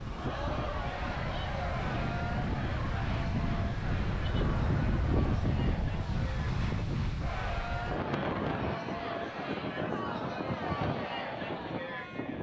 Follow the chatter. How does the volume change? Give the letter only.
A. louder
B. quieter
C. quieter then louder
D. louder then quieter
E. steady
C.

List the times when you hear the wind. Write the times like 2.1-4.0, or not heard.
0.0-12.3.